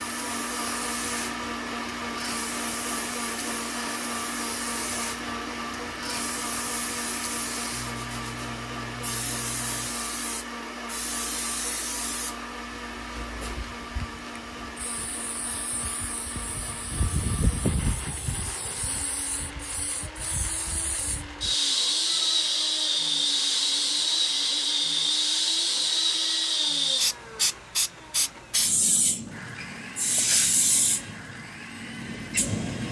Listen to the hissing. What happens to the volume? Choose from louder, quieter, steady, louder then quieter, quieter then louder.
louder.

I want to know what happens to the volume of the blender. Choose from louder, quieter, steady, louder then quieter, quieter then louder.
quieter.